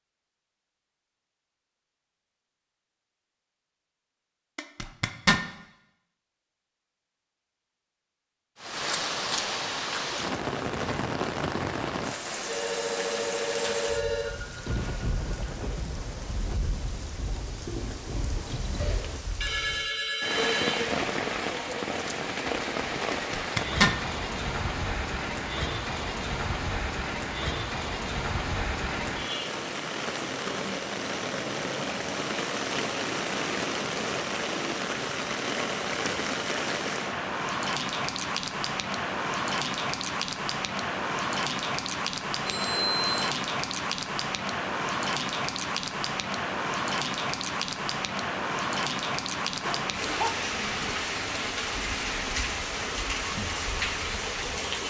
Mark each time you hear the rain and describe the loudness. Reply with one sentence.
You can hear the rain from 8.6 to 54.8 s, at a steady volume.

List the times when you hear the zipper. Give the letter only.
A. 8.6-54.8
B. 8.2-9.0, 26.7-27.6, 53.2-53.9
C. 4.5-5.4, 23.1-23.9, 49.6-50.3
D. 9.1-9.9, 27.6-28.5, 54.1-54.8
C.